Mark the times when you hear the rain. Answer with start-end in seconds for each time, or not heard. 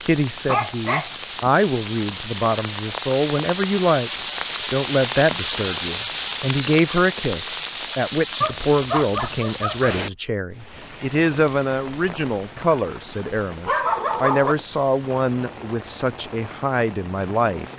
0.0-17.7.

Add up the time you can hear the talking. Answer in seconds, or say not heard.
17 s.